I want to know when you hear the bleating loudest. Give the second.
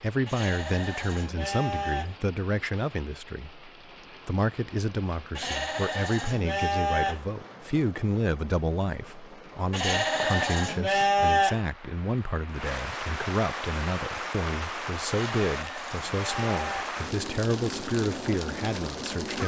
11 s.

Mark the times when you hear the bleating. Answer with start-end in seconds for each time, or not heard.
0.2-2.1, 5.3-7.2, 9.7-11.6, 15.1-16.9.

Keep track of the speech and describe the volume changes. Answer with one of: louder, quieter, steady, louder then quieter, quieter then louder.
steady.